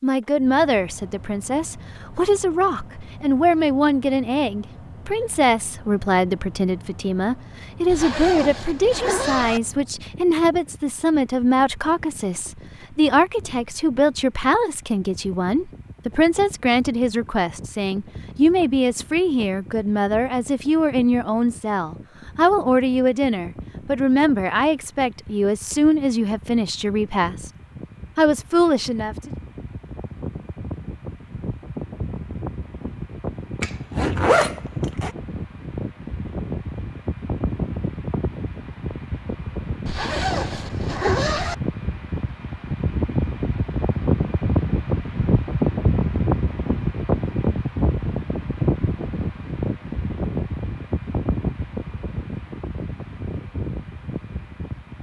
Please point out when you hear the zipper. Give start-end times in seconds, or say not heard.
7.8-9.6, 33.6-35.1, 39.9-41.5.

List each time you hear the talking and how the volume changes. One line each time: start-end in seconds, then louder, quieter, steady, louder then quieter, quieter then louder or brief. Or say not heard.
0.0-27.5 steady
28.1-29.3 brief.